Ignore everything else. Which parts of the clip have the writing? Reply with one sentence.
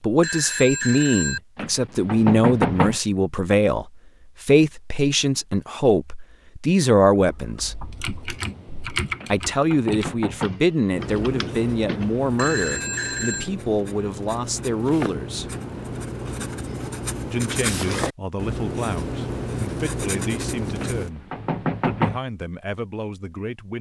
You can hear the writing from 10.9 to 21.1 s.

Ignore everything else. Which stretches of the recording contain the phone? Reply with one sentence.
You can hear the phone from 0.2 to 1.4 s and from 12.3 to 13.5 s.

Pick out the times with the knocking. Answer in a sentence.
The knocking can be heard from 1.6 to 3.0 s, from 9.2 to 10.6 s and from 20.8 to 22.2 s.